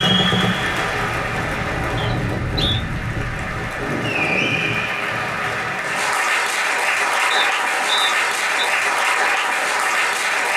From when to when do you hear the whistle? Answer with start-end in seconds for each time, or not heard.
1.9-2.8, 7.3-8.7.